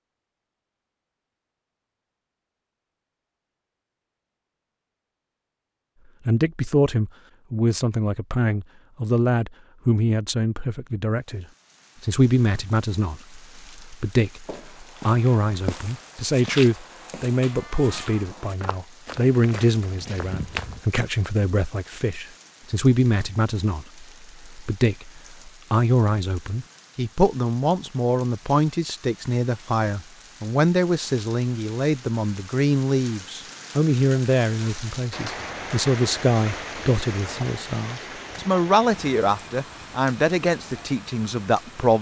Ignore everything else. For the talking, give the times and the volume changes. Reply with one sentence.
The talking can be heard from 6.2 to 41.9 s, at a steady volume.